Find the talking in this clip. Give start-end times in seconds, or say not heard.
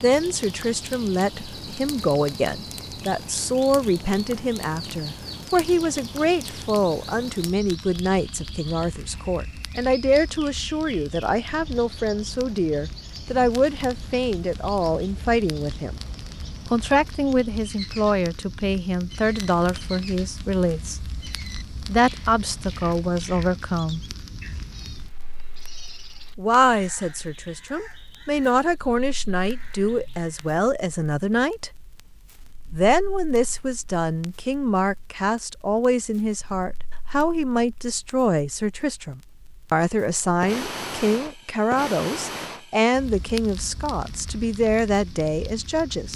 0.0-15.9, 16.7-24.0, 26.4-31.7, 32.7-46.1.